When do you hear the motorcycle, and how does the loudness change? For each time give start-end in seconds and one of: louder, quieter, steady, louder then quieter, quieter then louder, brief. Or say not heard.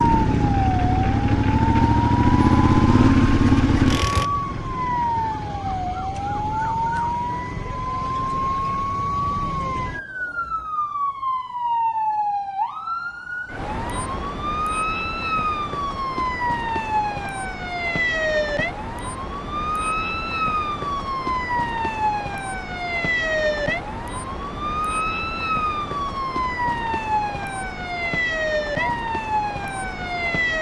0.0-4.2 louder.